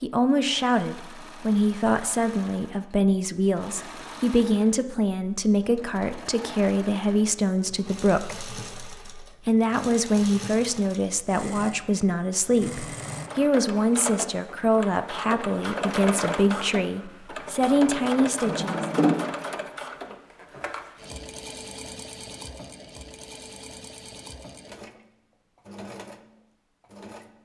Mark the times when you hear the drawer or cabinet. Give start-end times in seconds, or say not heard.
17.7-19.2.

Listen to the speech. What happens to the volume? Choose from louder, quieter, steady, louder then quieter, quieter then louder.
steady.